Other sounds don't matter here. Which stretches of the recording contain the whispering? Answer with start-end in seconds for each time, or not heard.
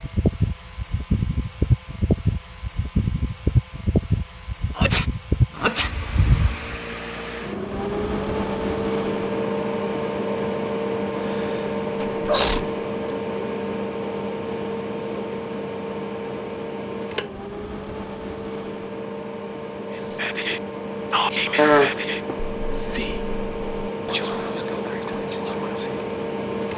19.9-26.1.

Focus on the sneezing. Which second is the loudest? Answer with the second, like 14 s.
22 s.